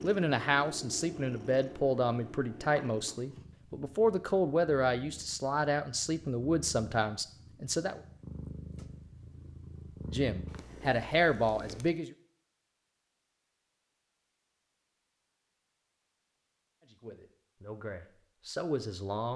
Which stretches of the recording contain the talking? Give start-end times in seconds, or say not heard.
0.0-8.0, 10.1-12.1, 16.8-19.3.